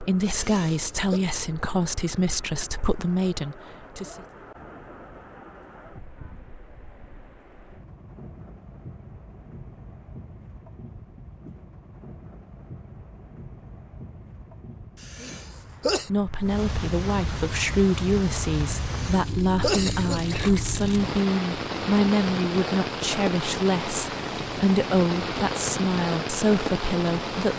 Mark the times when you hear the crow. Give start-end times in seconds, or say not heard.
not heard.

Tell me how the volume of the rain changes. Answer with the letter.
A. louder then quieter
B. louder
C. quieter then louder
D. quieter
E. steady
B.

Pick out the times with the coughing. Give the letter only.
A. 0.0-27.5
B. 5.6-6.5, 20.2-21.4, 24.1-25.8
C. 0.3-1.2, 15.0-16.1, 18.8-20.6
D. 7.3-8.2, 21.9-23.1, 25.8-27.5
C.